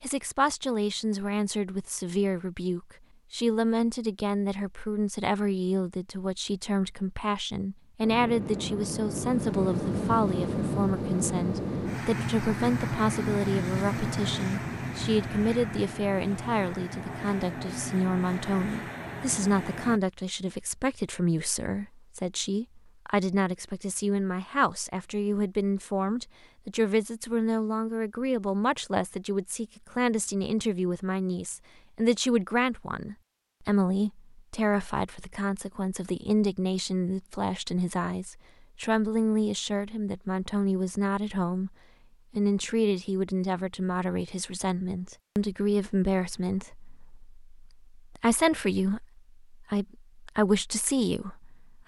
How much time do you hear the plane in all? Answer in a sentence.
You can hear the plane for 12 seconds altogether.